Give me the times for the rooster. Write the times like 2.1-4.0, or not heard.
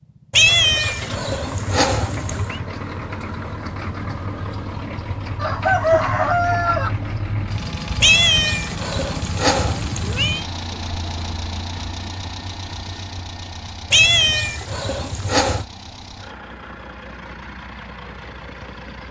5.4-6.9.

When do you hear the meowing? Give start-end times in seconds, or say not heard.
0.3-2.6, 8.0-10.4, 13.9-15.7.